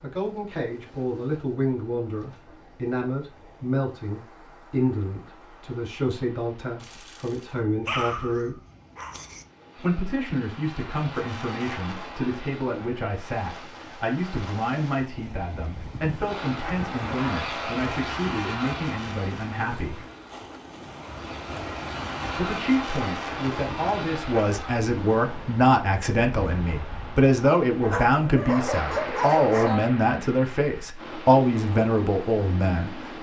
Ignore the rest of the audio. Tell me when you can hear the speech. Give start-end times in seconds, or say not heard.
0.0-8.6, 9.8-20.0, 22.4-33.0.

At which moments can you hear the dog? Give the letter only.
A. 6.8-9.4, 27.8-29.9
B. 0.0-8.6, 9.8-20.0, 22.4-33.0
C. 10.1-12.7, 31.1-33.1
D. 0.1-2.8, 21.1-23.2
A.